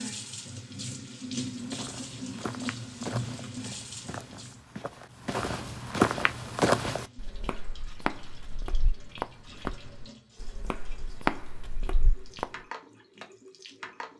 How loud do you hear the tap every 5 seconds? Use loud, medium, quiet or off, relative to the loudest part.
loud, quiet, medium.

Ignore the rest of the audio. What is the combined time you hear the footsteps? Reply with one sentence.
You can hear the footsteps for 11 seconds altogether.